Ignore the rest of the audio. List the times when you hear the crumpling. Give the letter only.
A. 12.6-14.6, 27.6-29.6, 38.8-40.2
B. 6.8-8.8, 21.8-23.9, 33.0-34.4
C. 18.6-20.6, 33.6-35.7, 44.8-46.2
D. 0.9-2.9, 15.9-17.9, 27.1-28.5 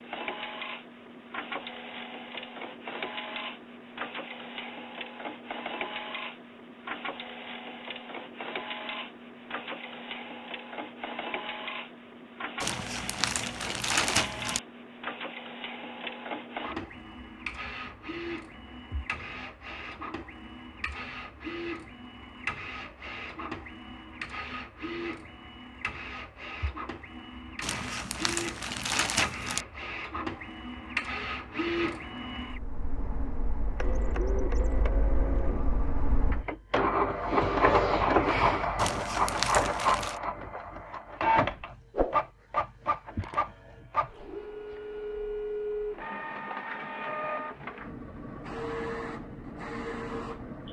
A.